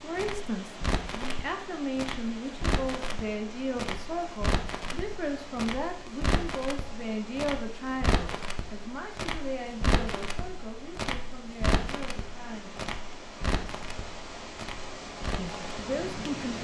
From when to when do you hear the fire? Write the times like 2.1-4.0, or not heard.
0.0-16.5.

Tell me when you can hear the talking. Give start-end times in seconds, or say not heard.
0.0-12.8, 15.3-16.5.